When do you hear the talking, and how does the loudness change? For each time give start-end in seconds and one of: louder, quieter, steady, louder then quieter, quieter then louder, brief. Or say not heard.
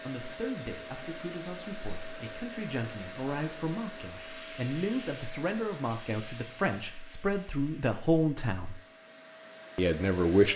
0.1-8.8 louder
9.8-10.5 brief.